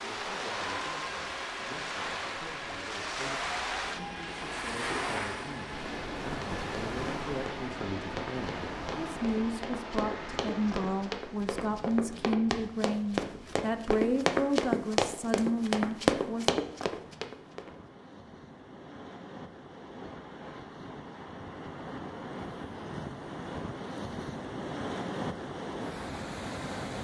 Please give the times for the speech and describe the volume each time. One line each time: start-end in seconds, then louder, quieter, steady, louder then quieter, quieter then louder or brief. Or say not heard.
0.0-16.5 louder.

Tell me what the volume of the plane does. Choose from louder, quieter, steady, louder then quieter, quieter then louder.
steady.